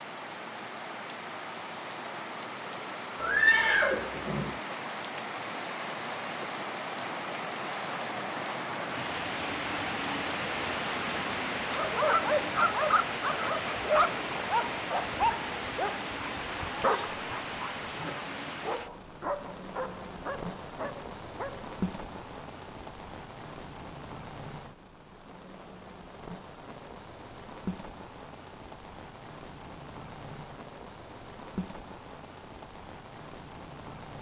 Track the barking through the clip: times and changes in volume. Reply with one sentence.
You can hear the barking from 11.7 to 21.6 s, getting quieter.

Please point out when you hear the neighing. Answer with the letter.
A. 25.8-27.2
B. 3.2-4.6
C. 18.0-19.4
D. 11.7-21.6
B.